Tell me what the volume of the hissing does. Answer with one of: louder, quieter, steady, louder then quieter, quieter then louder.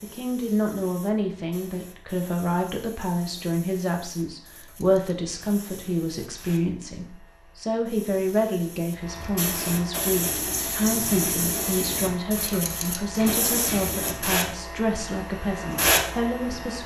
louder.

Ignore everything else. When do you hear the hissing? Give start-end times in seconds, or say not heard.
0.0-16.8.